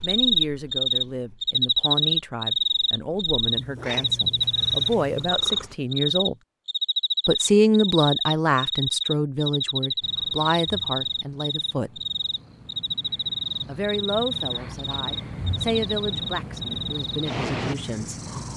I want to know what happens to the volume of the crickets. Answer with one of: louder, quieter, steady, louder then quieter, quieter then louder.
quieter.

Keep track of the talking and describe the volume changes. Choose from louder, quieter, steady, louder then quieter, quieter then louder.
louder then quieter.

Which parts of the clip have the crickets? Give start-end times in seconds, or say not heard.
0.0-18.5.